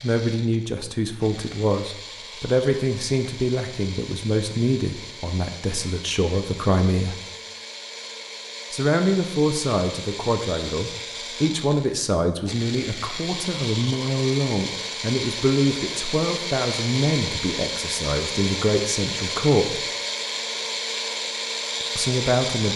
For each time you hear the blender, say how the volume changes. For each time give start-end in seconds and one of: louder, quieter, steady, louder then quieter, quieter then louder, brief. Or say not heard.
0.0-22.7 louder.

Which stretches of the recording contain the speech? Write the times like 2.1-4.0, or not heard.
0.0-7.2, 8.7-19.8, 21.9-22.7.